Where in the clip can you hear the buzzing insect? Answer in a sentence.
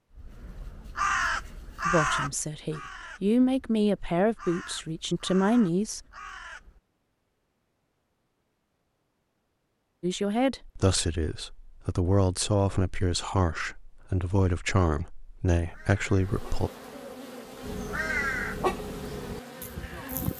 The buzzing insect can be heard from 16.1 to 20.3 s.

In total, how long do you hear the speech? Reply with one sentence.
The speech can be heard for 11 seconds in total.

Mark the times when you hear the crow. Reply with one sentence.
The crow can be heard from 0.1 to 6.8 s and from 15.6 to 20.3 s.